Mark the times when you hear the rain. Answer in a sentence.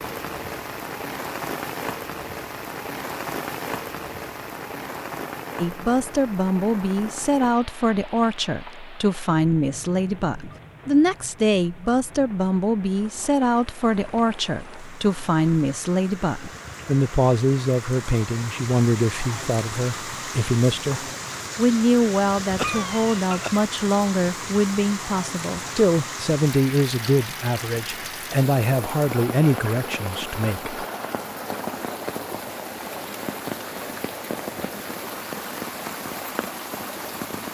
The rain can be heard from 0.0 to 37.4 s.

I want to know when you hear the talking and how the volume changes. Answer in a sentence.
You can hear the talking from 5.6 to 30.9 s, at a steady volume.